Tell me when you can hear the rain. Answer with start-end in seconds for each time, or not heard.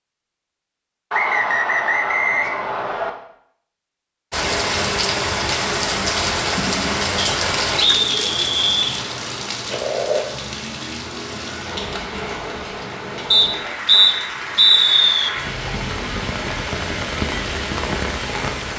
4.3-18.7.